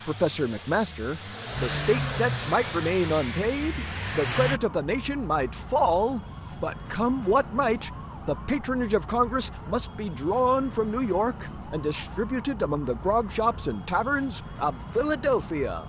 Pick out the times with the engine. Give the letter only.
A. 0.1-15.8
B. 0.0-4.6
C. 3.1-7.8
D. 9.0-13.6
B.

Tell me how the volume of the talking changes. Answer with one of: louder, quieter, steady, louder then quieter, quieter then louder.
steady.